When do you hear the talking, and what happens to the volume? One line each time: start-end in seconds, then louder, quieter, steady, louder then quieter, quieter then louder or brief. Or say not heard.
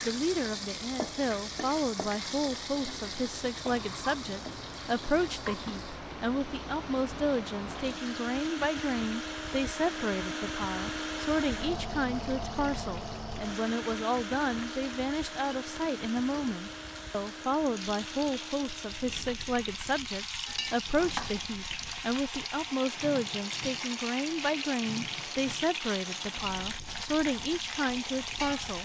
0.0-28.7 steady.